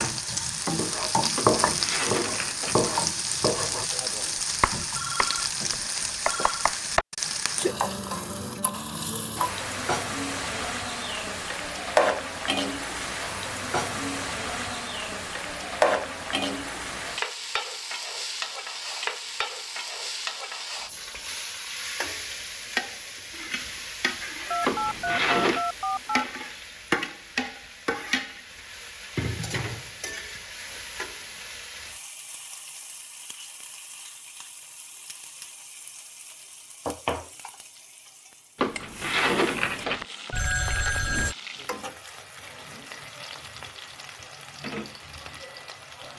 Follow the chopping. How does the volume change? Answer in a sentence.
The loudness of the chopping goes down.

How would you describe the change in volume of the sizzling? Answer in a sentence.
The volume of the sizzling goes down.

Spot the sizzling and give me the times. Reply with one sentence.
You can hear the sizzling from 0.0 to 46.1 s.